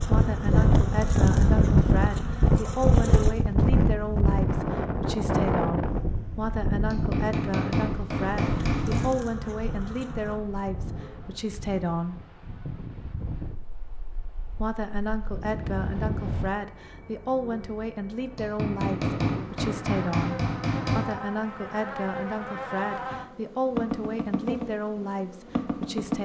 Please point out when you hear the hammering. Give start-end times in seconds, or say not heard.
6.9-9.1, 18.4-21.1.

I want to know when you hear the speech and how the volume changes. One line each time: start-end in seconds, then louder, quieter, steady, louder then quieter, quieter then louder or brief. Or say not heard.
0.0-12.2 steady
14.5-26.2 steady.